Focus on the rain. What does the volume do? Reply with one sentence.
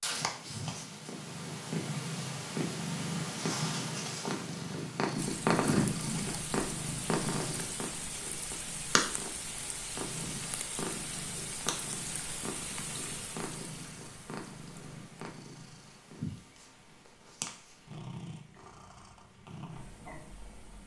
The volume of the rain goes down.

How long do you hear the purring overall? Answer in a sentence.
The purring can be heard for 21 seconds in total.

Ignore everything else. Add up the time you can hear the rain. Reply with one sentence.
You can hear the rain for 16 seconds altogether.